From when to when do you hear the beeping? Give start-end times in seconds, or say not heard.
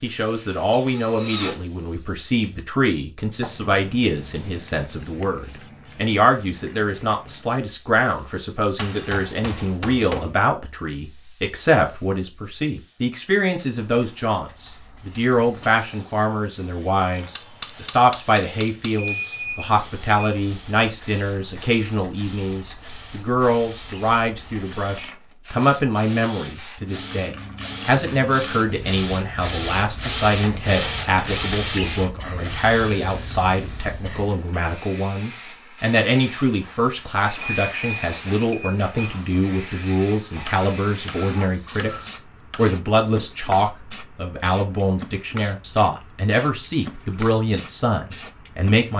18.9-20.4, 37.4-38.9.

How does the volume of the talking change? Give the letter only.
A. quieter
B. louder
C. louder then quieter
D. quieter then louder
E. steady
E.